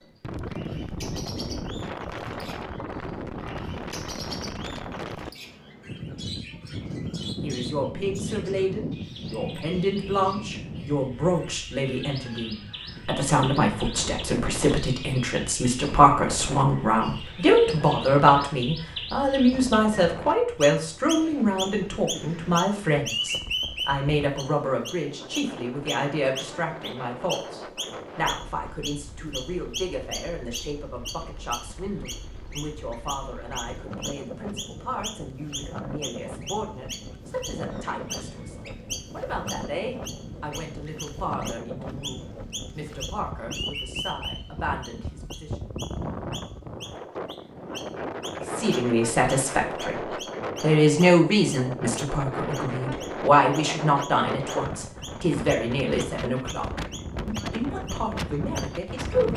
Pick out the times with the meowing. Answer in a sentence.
The meowing can't be heard in this clip.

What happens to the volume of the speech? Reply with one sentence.
The loudness of the speech goes down, then up.